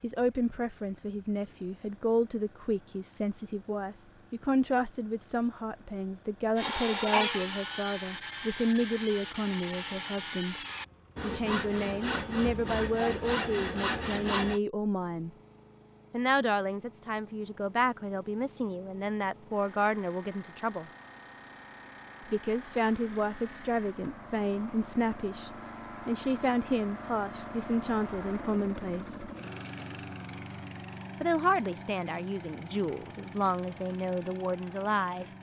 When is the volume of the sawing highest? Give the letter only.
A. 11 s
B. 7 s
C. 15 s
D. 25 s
B.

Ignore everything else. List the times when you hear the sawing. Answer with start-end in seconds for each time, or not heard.
6.5-14.6.